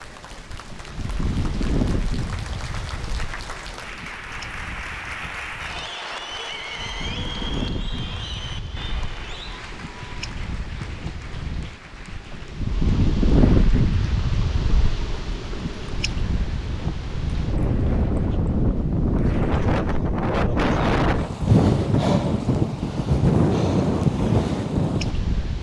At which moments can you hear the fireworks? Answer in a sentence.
The fireworks can't be heard in this clip.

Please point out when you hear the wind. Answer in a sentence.
You can hear the wind from 0.0 to 25.5 s.